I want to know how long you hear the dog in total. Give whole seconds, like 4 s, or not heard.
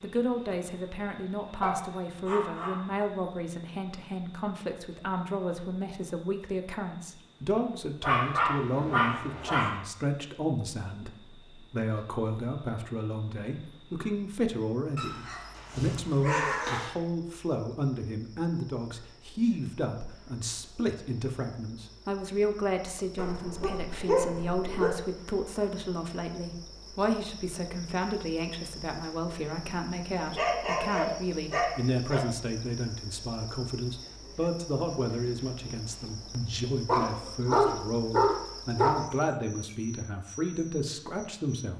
11 s.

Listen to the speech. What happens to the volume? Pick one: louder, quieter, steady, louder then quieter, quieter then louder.
steady.